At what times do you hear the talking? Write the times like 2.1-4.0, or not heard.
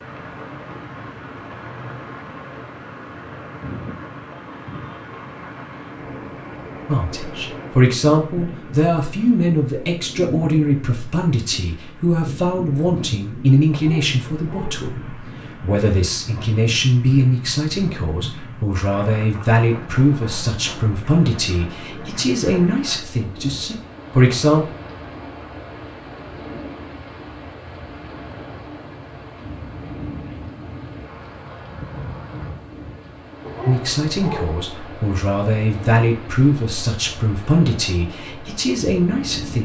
6.8-24.7, 33.6-39.5.